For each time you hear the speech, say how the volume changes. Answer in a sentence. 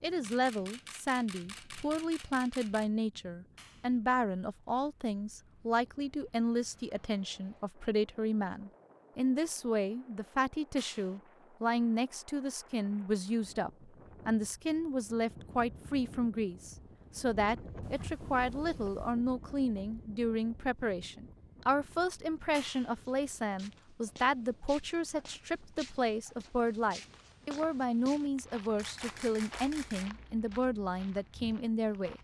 You can hear the speech from 0.0 to 32.1 s, at a steady volume.